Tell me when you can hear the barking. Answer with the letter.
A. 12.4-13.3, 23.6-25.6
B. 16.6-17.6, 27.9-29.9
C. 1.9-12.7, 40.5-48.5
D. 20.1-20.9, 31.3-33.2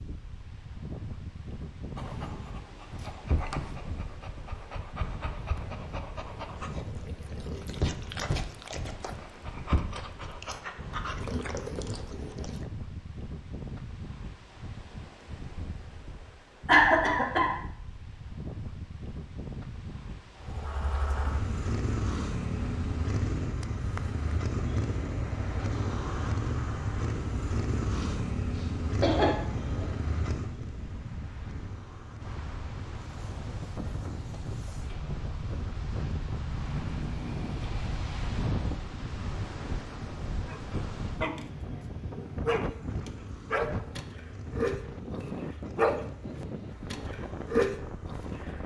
C.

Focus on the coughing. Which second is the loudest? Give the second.
17 s.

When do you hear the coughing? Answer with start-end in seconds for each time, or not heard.
16.6-17.6, 27.9-29.9.